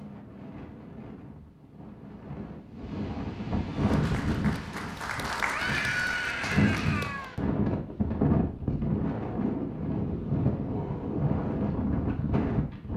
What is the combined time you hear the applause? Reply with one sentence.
The applause can be heard for 4 seconds in total.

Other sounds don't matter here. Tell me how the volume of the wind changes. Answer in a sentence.
The volume of the wind goes up.